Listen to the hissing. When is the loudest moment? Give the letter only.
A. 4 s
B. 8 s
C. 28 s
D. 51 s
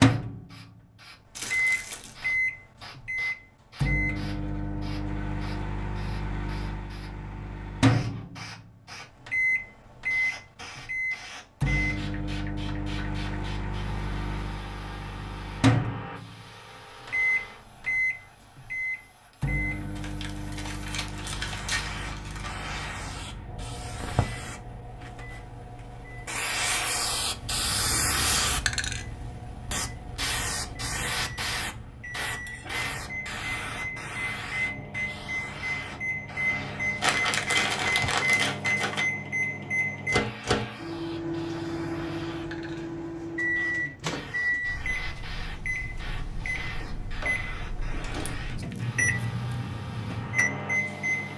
C.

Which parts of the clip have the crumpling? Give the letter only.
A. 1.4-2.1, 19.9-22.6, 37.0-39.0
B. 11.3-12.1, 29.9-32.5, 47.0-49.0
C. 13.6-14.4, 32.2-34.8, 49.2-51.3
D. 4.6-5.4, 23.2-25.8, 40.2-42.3
A.